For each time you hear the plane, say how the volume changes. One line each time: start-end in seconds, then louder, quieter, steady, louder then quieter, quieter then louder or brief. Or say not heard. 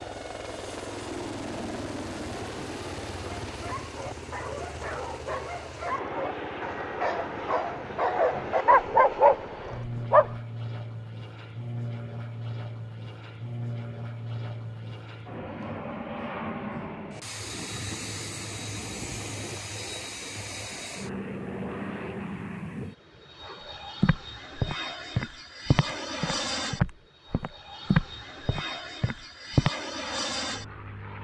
0.0-31.1 steady.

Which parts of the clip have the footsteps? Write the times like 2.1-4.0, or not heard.
24.0-29.7.